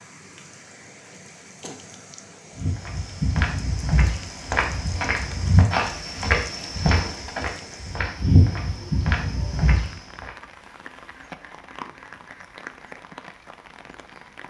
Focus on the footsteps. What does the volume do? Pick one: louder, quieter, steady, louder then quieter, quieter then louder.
steady.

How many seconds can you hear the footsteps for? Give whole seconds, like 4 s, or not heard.
8 s.